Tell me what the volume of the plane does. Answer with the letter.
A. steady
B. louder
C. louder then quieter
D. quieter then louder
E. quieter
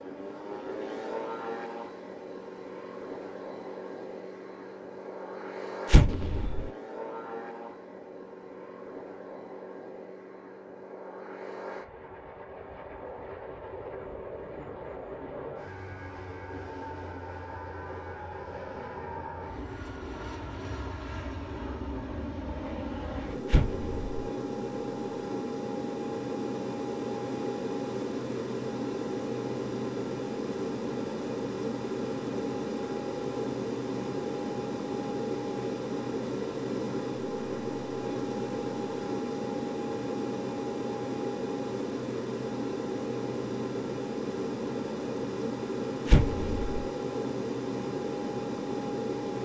B.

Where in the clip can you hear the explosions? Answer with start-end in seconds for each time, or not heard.
5.9-6.7, 23.4-24.1, 46.0-46.9.